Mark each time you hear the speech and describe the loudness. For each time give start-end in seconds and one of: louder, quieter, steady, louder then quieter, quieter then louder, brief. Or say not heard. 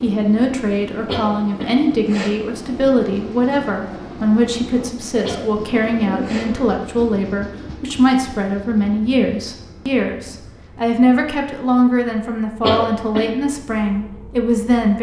0.0-14.9 steady.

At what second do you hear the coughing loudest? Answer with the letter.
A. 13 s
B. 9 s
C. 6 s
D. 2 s
A.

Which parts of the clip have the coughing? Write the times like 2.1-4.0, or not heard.
1.1-2.4, 5.2-6.5, 12.6-13.3.